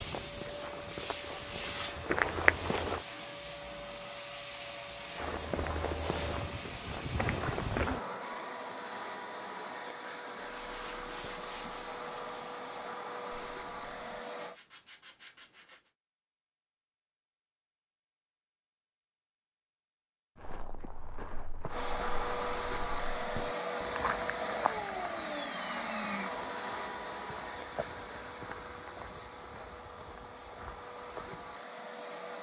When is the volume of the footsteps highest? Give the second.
2 s.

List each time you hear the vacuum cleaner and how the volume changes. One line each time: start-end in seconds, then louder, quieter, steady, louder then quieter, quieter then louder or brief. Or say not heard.
0.0-14.6 steady
21.6-32.3 quieter.